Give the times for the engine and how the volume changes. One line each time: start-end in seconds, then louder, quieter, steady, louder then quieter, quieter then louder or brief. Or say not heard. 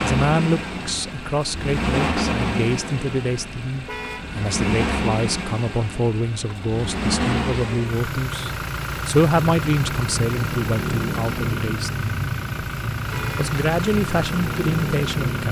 0.0-15.4 steady.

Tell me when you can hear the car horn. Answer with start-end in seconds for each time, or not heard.
3.9-4.3, 13.1-13.5.